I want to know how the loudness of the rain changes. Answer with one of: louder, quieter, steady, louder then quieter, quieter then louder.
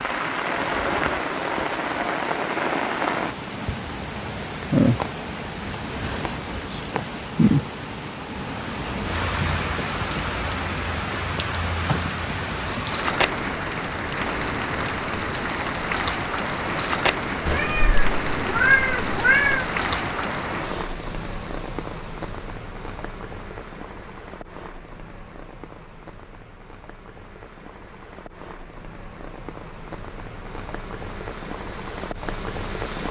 quieter.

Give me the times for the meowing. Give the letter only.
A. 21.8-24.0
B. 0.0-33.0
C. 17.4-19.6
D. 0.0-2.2
C.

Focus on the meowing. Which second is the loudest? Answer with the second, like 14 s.
19 s.